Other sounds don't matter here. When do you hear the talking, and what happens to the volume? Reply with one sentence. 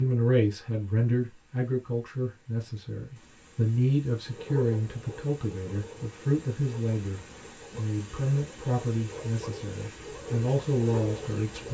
The talking can be heard from 0.0 to 11.7 s, at a steady volume.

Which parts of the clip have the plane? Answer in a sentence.
You can't hear the plane here.